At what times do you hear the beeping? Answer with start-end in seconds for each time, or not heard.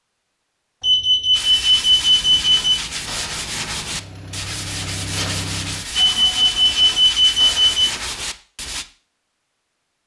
0.8-2.8, 6.0-7.8.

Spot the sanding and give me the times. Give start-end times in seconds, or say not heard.
1.3-8.8.